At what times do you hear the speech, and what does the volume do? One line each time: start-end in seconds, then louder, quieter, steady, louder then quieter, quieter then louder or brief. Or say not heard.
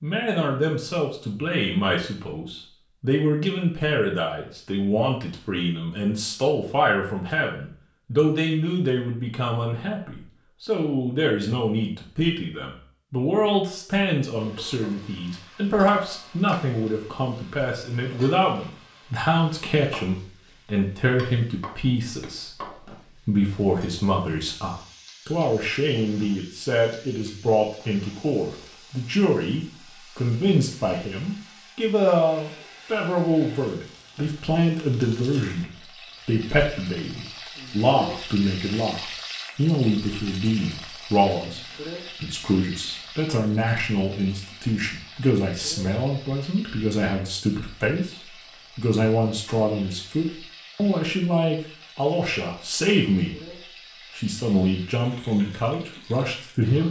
0.0-53.5 steady
54.1-56.8 brief.